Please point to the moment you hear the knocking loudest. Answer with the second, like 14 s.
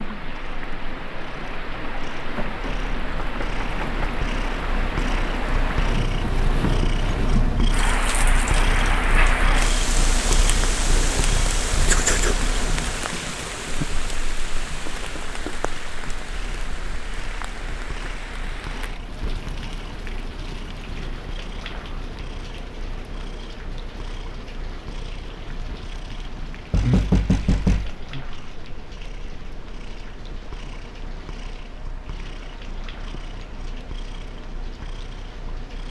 27 s.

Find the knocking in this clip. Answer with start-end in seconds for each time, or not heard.
2.4-4.1, 14.6-15.6, 26.7-28.2.